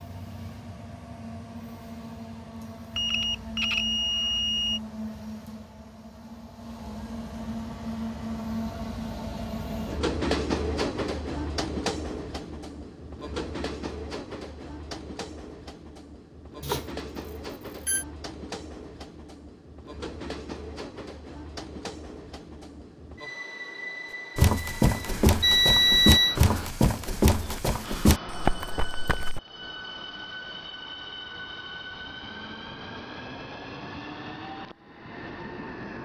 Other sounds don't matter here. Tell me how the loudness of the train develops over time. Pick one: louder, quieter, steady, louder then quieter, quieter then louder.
louder then quieter.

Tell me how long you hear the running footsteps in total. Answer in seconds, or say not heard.
5 s.